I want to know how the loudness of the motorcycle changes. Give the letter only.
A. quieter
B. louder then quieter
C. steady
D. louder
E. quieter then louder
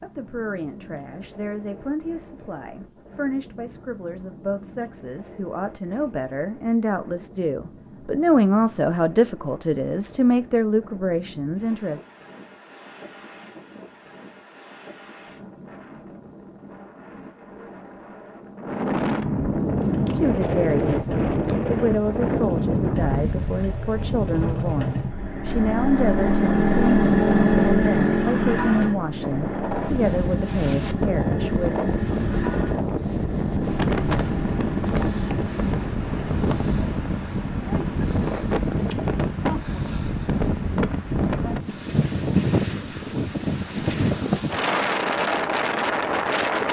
B.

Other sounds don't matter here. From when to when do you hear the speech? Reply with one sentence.
The speech can be heard from 0.0 to 12.1 s and from 20.1 to 31.7 s.